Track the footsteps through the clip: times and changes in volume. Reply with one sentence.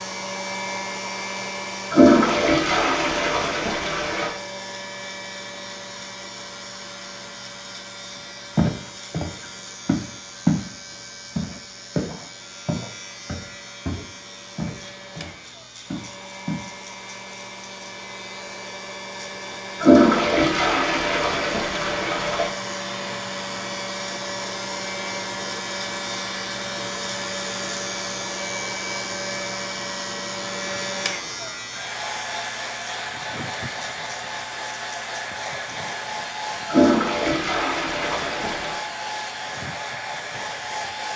The footsteps can be heard briefly from 8.6 to 10.7 s; and from 11.3 to 16.6 s, getting quieter.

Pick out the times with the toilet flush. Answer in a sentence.
The toilet flush can be heard from 1.9 to 4.3 s, from 19.8 to 22.5 s and from 36.7 to 38.8 s.